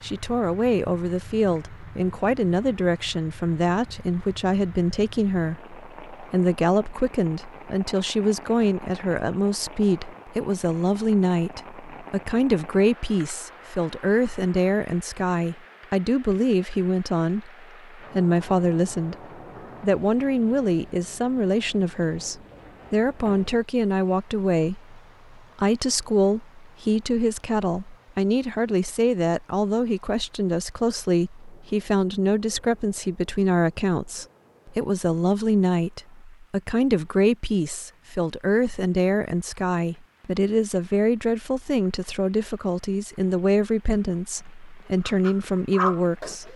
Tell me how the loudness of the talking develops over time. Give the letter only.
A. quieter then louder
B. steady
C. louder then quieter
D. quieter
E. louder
B.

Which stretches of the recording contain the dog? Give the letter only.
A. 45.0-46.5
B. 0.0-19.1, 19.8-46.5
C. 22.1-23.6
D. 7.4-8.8
A.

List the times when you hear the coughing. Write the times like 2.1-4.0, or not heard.
not heard.